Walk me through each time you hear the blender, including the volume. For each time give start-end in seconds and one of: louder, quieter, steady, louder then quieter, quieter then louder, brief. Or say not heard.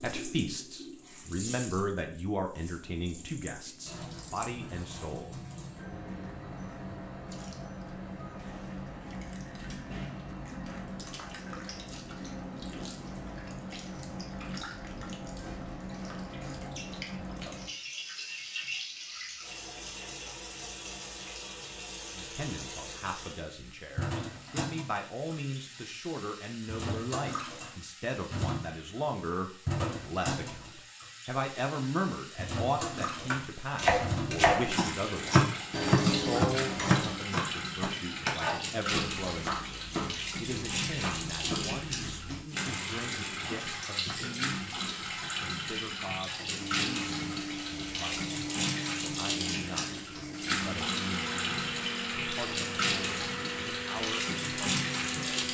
46.6-55.4 steady.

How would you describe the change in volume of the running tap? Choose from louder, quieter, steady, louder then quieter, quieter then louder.
louder.